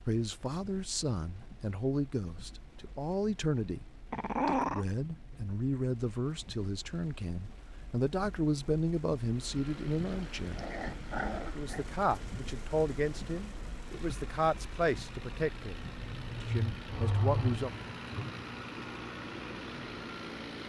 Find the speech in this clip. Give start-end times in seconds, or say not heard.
0.1-10.7, 11.6-17.7.